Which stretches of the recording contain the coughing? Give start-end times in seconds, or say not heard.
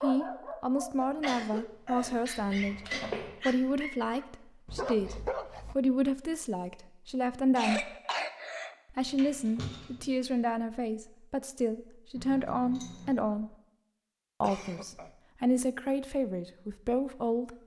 1.0-2.2, 7.5-8.8, 14.4-15.1.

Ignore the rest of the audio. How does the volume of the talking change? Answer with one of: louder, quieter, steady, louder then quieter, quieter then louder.
steady.